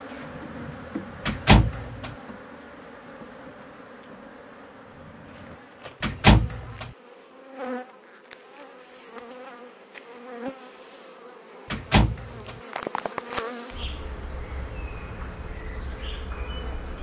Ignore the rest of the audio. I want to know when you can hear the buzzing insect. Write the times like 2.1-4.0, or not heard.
0.0-16.9.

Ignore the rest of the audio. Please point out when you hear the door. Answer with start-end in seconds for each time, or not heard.
1.2-2.1, 6.0-6.9, 11.7-12.6.